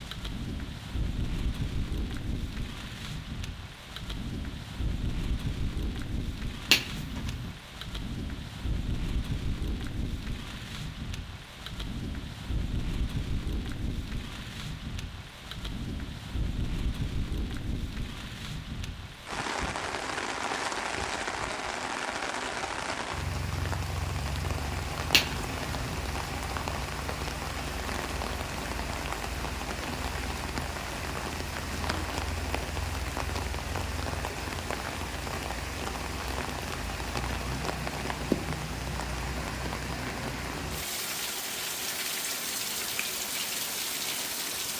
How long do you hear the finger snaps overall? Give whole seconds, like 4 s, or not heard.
2 s.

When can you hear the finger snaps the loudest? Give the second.
7 s.